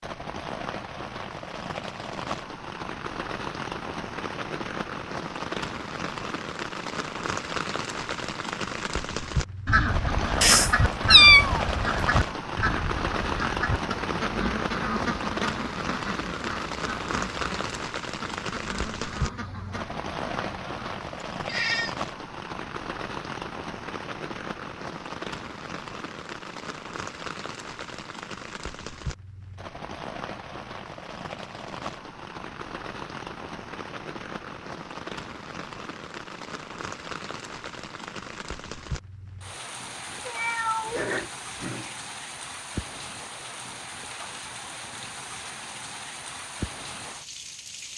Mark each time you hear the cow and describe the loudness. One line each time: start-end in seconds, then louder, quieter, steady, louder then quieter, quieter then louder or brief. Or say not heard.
not heard.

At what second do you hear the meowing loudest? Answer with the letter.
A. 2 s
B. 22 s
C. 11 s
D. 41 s
C.